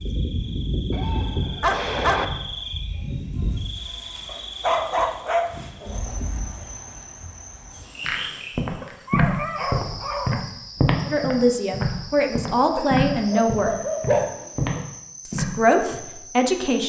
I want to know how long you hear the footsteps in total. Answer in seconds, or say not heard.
8 s.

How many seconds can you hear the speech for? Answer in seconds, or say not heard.
4 s.